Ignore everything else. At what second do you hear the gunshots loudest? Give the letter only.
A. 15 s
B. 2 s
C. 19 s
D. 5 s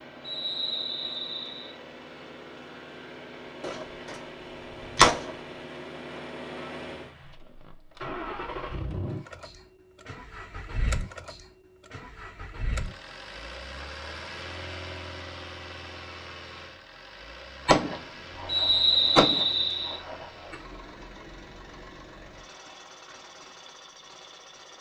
D.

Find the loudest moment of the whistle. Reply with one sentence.
The loudest moment of the whistle is at 19 seconds.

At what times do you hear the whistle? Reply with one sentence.
The whistle can be heard from 0.2 to 1.8 s and from 18.4 to 20.0 s.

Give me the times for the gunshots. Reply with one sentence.
The gunshots can be heard from 3.6 to 4.2 s, from 4.8 to 5.3 s and from 17.6 to 20.6 s.